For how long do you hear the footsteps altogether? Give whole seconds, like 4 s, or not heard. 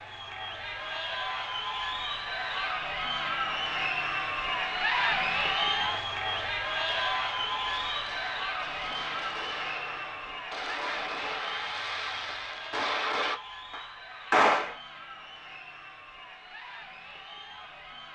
not heard.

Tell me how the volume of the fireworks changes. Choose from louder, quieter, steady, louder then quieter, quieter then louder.
louder.